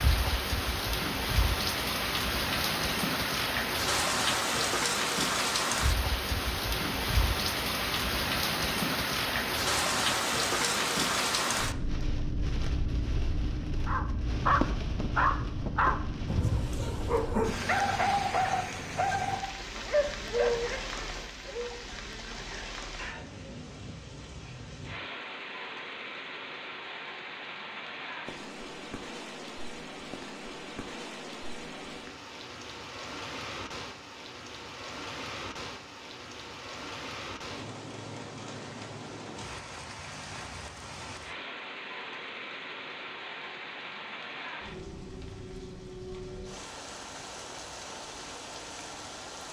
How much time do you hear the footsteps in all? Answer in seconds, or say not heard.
not heard.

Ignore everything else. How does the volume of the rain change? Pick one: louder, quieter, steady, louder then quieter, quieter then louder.
quieter.